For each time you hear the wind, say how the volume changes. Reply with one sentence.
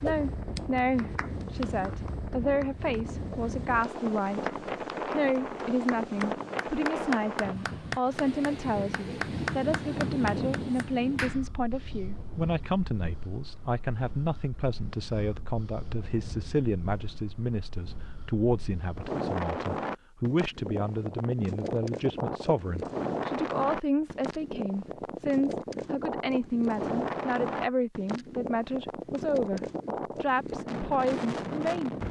You can hear the wind from 0.0 to 32.0 s, getting quieter then louder.